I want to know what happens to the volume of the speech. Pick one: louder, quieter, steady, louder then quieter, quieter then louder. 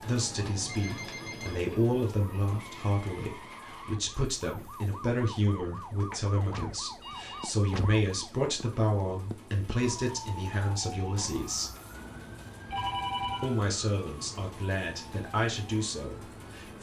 steady.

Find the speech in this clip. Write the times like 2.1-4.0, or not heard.
0.0-11.8, 13.4-16.7.